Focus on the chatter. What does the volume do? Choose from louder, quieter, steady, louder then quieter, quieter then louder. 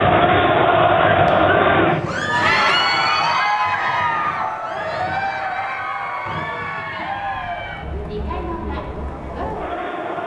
quieter.